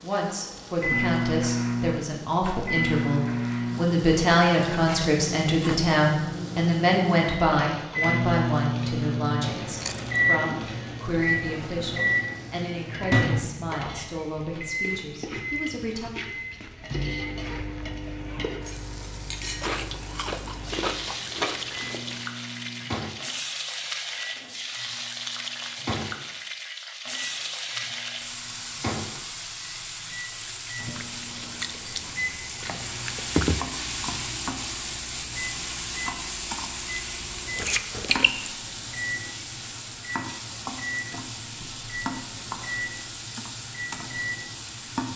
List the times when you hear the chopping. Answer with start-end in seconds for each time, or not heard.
not heard.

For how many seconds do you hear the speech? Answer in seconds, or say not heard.
16 s.